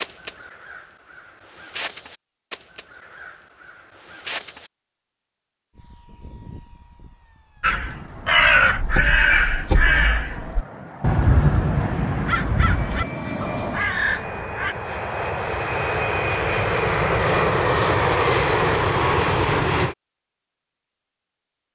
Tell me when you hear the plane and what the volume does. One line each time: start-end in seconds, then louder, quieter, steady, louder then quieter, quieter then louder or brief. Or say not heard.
5.8-19.9 louder.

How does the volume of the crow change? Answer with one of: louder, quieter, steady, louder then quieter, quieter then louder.
louder then quieter.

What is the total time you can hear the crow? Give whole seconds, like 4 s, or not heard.
12 s.